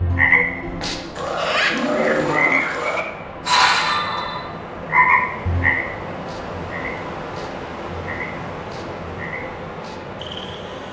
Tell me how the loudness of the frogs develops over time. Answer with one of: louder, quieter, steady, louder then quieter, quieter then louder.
quieter.